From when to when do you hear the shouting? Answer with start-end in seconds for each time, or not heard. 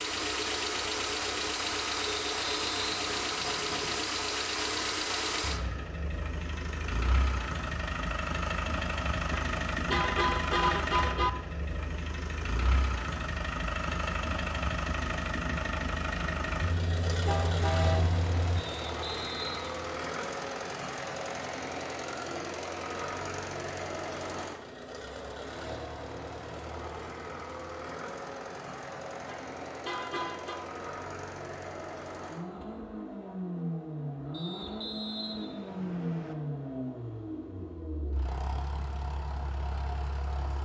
not heard.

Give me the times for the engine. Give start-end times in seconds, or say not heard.
0.0-40.6.